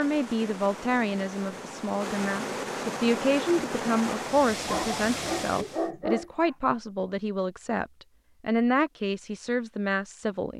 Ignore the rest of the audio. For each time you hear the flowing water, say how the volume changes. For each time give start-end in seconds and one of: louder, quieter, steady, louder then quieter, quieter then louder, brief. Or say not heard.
0.0-5.9 louder.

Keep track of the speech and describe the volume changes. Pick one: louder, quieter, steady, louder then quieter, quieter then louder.
steady.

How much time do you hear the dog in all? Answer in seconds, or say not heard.
2 s.